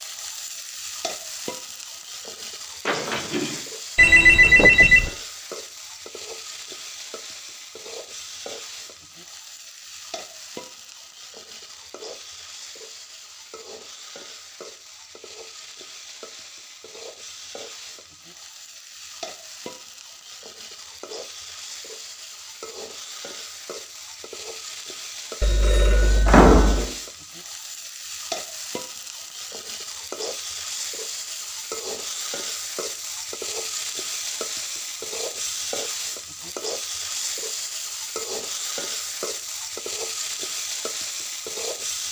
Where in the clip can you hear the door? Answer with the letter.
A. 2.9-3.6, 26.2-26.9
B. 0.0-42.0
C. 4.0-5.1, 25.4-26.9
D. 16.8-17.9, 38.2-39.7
A.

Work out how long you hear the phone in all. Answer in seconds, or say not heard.
3 s.